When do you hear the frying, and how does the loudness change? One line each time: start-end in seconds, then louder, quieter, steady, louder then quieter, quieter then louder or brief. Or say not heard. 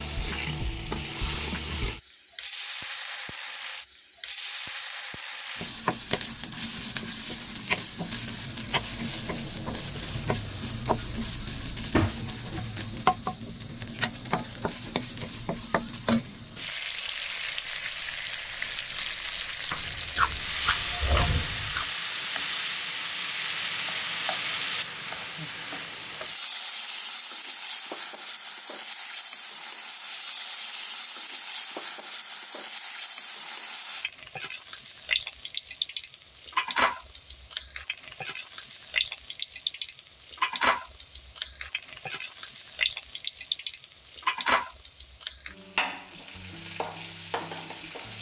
0.0-48.1 steady.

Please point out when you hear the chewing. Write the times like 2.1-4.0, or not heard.
19.8-21.9.